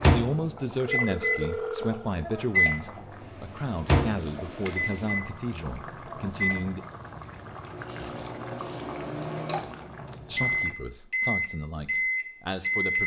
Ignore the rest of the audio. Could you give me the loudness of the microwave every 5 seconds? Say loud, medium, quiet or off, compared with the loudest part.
loud, medium, loud.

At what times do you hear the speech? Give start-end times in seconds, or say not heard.
0.0-6.8, 10.2-13.0.